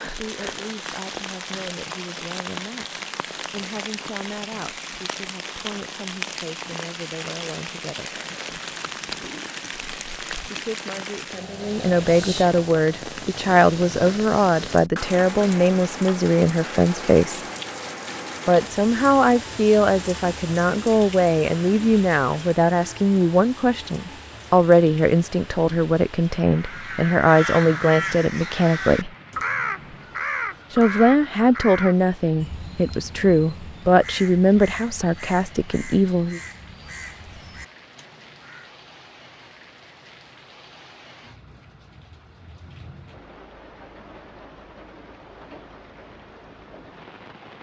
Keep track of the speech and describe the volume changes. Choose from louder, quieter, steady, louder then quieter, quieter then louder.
louder.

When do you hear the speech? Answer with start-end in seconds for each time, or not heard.
0.0-8.2, 10.4-17.4, 18.4-29.1, 30.7-36.4.